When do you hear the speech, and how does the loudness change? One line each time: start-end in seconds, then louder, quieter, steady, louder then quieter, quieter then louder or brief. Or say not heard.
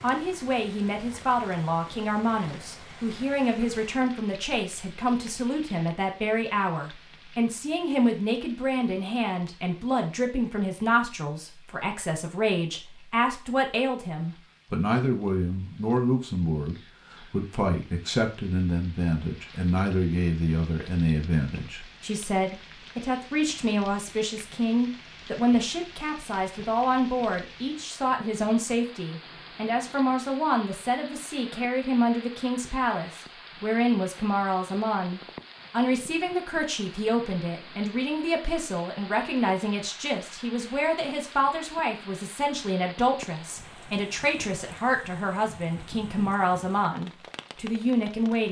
0.0-48.4 steady.